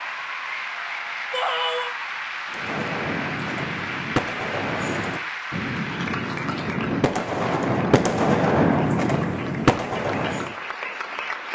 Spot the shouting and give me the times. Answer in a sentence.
You can hear the shouting from 1.3 to 1.9 s.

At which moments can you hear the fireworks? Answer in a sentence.
You can hear the fireworks from 2.5 to 10.6 s.